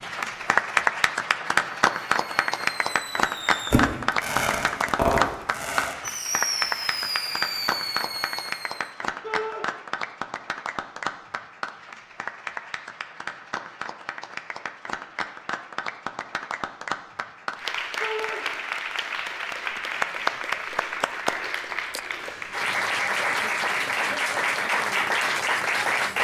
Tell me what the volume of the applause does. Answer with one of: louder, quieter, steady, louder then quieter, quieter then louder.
quieter then louder.